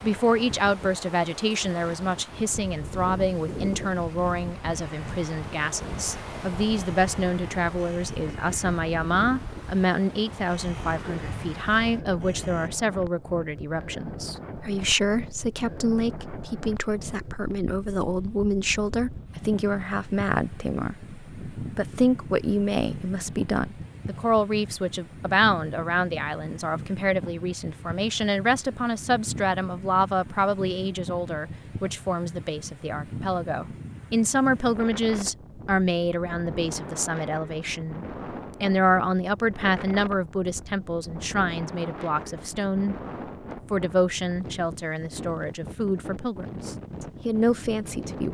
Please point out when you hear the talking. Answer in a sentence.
You can hear the talking from 0.0 to 43.0 s and from 43.7 to 48.2 s.